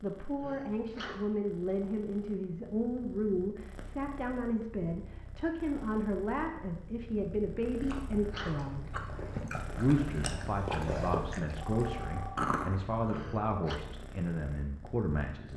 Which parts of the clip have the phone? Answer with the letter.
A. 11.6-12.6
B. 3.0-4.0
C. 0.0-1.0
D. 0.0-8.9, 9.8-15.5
A.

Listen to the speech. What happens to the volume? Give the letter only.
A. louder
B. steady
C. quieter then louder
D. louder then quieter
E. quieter
B.